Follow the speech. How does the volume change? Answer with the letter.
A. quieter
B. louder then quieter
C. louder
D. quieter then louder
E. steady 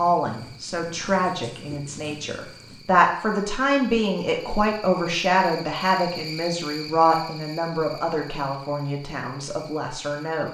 B.